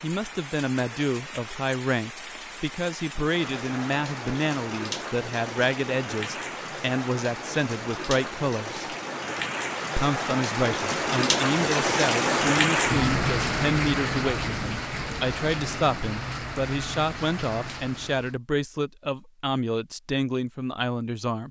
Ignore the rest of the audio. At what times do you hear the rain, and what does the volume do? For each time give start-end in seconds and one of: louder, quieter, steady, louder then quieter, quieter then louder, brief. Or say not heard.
0.0-18.4 louder then quieter.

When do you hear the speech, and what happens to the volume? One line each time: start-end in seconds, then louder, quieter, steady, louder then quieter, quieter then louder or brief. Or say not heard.
0.0-8.8 steady
9.9-21.4 steady.